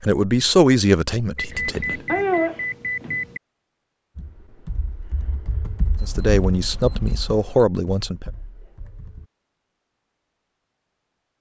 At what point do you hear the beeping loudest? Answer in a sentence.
The loudest moment of the beeping is at 2 seconds.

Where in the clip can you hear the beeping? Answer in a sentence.
The beeping can be heard from 1.4 to 3.4 s and from 6.0 to 7.7 s.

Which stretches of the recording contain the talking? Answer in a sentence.
The talking can be heard from 0.0 to 2.2 s and from 6.0 to 8.3 s.